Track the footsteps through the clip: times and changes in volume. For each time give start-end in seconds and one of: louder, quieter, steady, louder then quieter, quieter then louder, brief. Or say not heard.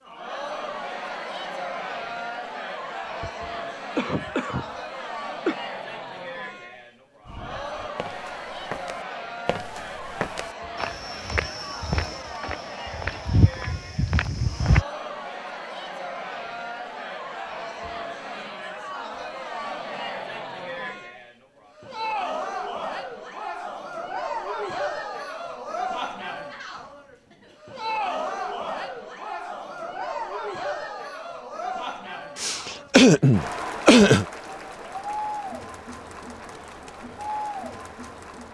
7.2-14.8 louder.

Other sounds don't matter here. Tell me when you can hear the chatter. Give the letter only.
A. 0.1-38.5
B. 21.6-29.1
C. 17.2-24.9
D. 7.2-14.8
A.